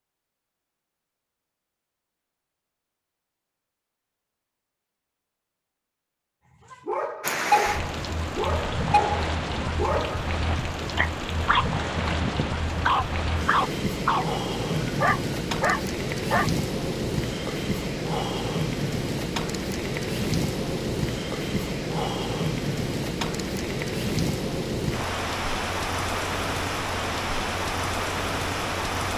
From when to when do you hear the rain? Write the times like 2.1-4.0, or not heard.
7.2-29.1.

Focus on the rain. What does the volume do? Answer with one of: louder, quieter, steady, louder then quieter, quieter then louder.
steady.